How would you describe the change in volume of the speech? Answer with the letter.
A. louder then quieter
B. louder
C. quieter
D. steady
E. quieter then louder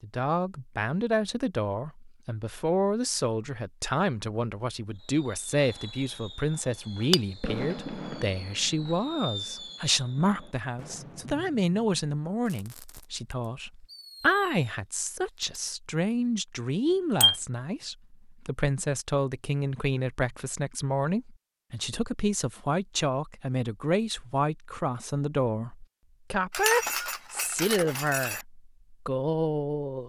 D.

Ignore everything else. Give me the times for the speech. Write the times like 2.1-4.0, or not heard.
0.0-30.0.